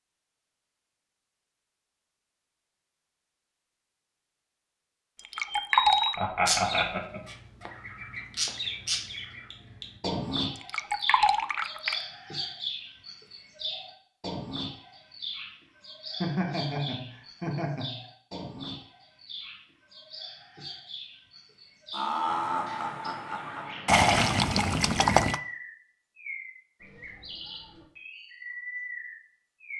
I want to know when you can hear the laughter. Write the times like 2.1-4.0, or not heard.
6.2-7.2, 16.2-18.1, 21.9-23.8.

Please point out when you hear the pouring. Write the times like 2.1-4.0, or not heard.
5.2-6.2, 10.6-12.1, 23.9-25.4.